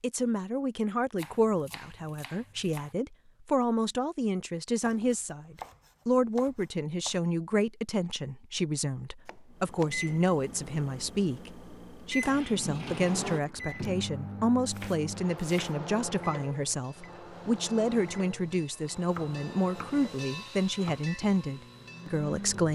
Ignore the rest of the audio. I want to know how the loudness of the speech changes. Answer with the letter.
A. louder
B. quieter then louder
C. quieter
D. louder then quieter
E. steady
E.